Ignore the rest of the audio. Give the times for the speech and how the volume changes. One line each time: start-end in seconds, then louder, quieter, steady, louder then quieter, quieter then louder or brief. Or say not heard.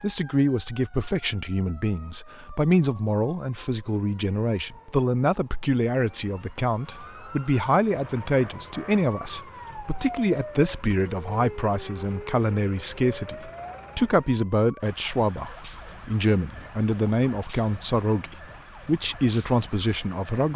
0.0-20.5 steady.